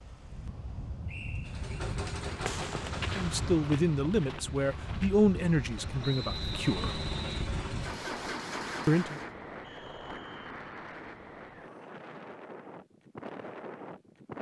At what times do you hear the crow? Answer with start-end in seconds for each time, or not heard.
not heard.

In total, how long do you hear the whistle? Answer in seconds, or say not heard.
3 s.